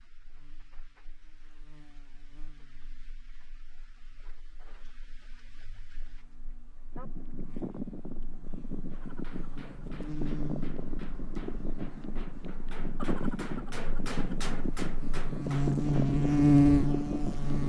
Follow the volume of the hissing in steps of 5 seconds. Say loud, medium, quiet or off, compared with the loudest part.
quiet, medium, loud, loud.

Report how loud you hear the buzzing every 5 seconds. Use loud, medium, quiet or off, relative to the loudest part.
quiet, quiet, quiet, loud.